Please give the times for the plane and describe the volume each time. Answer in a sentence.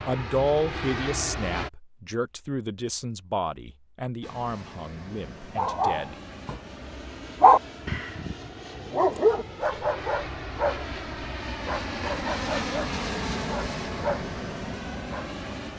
The plane can be heard briefly from 0.0 to 1.7 s; and from 4.2 to 15.7 s, getting louder.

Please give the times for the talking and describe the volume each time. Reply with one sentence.
The talking can be heard from 0.1 to 6.2 s, getting quieter.